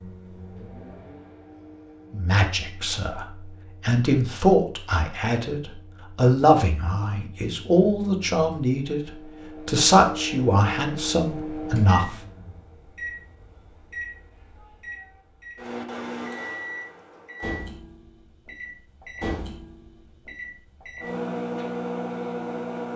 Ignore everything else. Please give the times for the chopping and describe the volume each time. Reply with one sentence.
You can't hear the chopping here.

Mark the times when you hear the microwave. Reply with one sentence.
The microwave can be heard from 0.0 to 22.9 s.